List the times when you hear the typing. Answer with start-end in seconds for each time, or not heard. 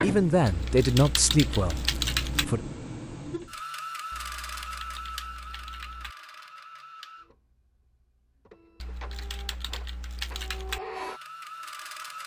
0.5-2.5, 4.1-6.2, 8.8-10.8.